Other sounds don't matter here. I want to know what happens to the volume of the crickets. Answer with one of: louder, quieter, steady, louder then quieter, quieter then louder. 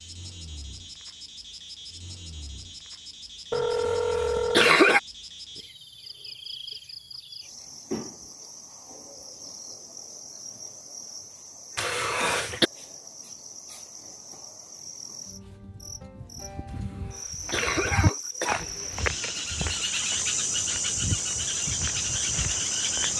louder.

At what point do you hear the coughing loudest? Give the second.
5 s.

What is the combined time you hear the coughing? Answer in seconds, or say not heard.
3 s.